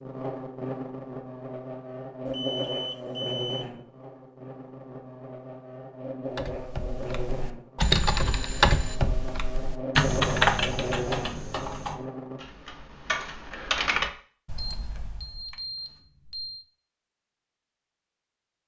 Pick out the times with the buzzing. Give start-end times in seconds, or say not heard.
0.0-12.4.